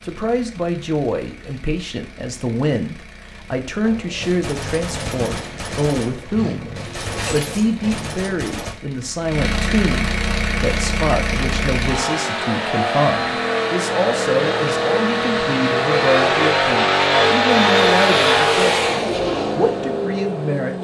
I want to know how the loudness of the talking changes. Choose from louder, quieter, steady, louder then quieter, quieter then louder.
steady.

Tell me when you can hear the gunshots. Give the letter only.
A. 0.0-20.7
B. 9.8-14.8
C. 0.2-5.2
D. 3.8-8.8
D.